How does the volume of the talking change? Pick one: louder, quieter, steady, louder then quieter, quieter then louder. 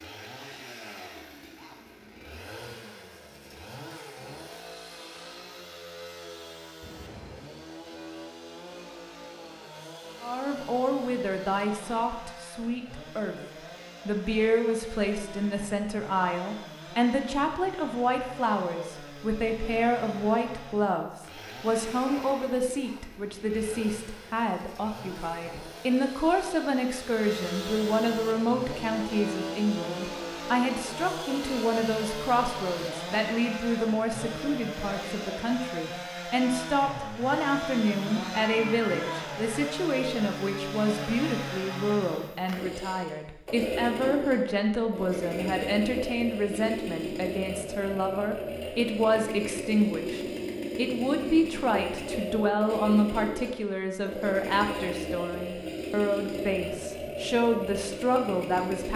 steady.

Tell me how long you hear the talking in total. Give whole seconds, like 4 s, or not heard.
48 s.